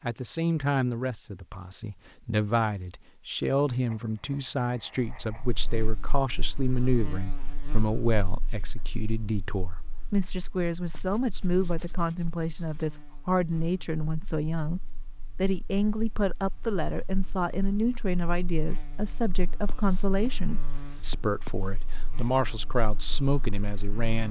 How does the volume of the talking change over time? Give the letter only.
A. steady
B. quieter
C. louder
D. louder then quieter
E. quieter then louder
A.